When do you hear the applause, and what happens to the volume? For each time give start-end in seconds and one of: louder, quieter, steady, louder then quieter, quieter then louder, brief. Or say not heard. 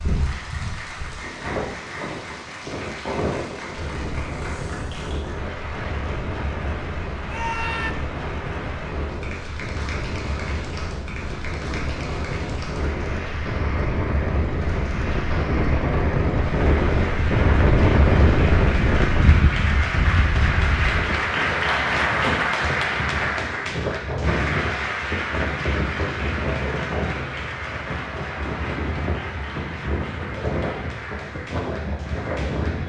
0.0-32.8 louder then quieter.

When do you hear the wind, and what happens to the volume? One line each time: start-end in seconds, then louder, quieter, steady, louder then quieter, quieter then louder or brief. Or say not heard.
0.0-32.8 louder then quieter.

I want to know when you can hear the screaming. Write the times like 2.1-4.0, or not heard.
7.2-8.0.